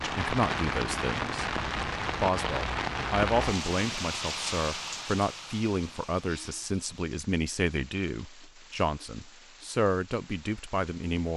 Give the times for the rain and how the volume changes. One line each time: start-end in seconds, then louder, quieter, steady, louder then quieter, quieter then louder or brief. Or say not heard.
0.0-11.3 quieter.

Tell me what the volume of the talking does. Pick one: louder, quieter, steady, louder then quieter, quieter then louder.
steady.